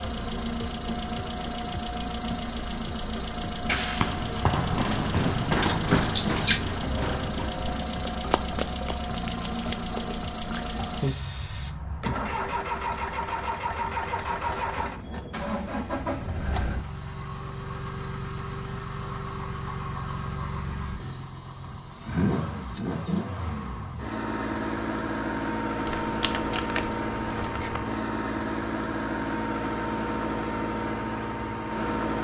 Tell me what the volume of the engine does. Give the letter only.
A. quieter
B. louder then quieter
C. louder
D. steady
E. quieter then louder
D.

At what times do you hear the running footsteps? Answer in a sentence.
You can hear the running footsteps from 3.6 to 10.2 s.